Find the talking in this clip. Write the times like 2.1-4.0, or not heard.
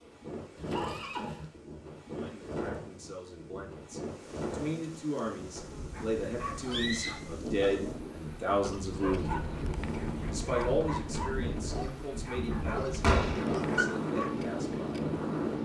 2.1-9.4, 10.3-15.1.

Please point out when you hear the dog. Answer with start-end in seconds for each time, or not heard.
5.9-14.3.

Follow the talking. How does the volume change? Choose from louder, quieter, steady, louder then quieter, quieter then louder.
louder then quieter.